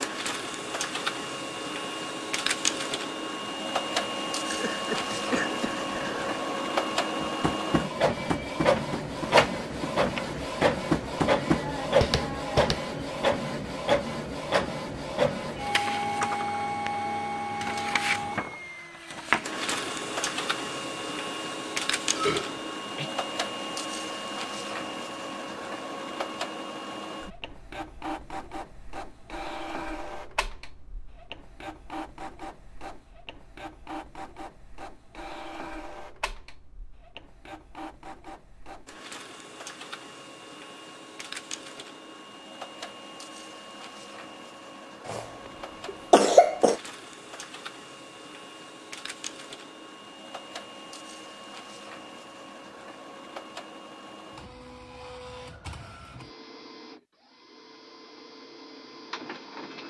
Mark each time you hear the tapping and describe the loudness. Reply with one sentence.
You can hear the tapping from 7.2 to 12.8 s, getting quieter then louder.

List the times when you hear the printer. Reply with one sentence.
You can hear the printer from 0.0 to 59.8 s.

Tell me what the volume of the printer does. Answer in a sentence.
The loudness of the printer goes down.